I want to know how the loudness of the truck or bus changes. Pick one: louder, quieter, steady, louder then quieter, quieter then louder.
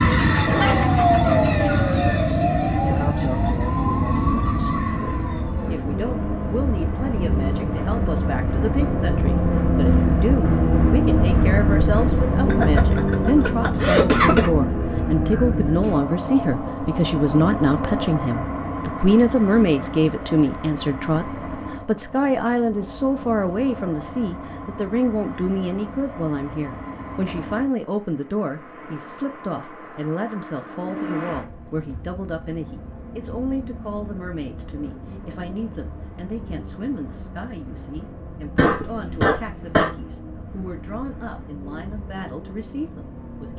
quieter.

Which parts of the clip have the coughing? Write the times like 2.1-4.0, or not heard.
12.5-14.5, 38.5-39.9.